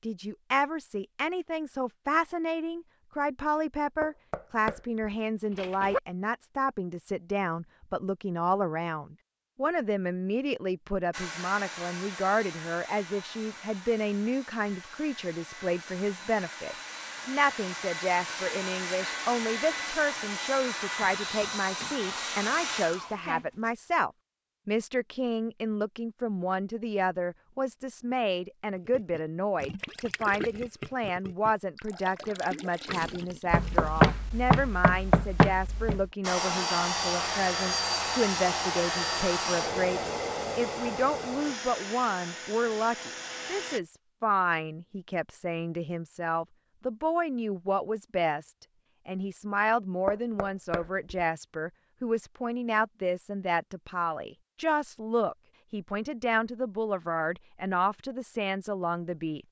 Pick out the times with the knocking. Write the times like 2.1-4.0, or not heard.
4.0-6.0, 33.5-36.0, 50.0-51.1.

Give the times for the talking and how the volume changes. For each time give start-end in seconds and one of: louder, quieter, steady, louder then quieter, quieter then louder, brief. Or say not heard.
0.0-59.4 steady.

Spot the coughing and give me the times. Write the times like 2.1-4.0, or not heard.
not heard.